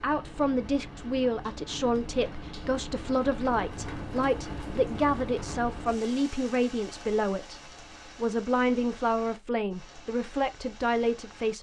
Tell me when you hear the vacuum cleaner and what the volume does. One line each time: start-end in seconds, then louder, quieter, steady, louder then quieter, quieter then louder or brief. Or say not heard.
not heard.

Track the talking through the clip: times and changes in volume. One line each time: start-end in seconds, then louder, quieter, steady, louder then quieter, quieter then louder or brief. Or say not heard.
0.0-11.5 steady.